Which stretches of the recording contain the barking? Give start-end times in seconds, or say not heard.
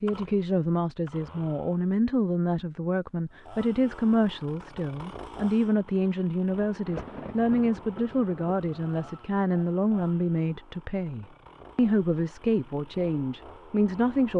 not heard.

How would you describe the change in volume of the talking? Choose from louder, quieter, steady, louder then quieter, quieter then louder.
steady.